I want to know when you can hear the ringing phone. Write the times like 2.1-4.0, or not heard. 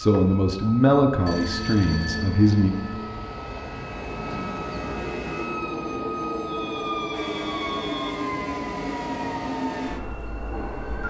1.2-3.2, 6.4-8.2.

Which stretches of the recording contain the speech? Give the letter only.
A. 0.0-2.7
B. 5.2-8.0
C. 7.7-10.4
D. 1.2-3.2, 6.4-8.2
A.